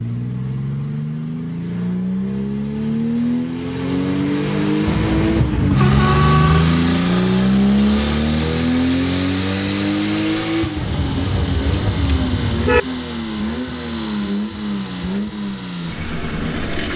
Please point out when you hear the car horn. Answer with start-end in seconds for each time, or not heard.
4.8-6.7, 10.8-12.8.